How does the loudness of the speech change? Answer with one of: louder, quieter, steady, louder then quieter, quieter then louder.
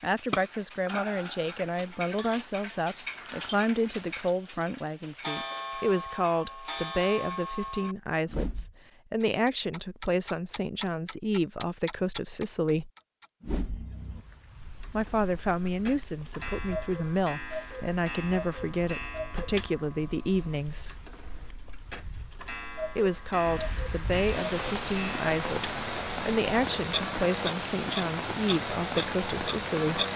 steady.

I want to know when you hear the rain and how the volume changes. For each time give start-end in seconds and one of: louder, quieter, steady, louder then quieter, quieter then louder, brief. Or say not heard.
13.9-30.1 louder.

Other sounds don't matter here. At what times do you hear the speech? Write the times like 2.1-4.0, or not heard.
0.0-12.9, 14.9-20.9, 22.9-30.0.